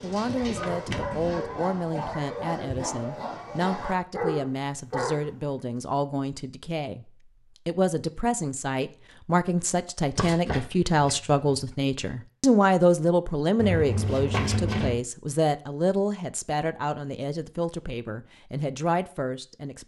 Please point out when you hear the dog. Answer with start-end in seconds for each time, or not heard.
0.0-5.3.